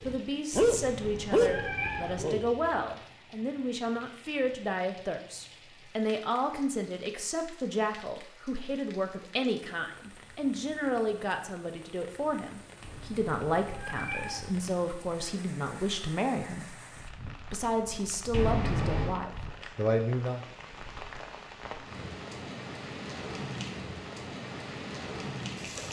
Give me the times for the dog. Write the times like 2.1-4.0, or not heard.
0.0-2.7.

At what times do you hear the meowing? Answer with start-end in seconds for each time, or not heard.
0.5-2.2, 12.8-14.5, 18.3-19.2.